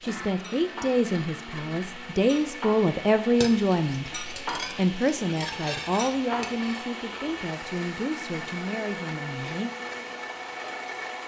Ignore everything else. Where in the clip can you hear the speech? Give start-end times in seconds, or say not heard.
0.0-9.7.